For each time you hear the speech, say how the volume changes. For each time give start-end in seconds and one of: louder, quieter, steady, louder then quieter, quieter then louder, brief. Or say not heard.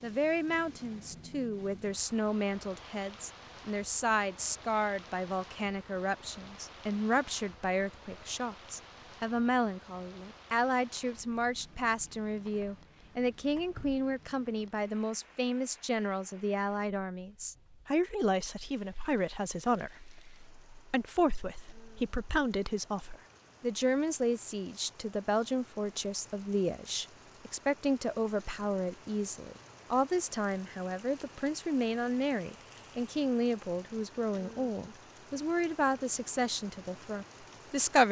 0.0-38.0 steady.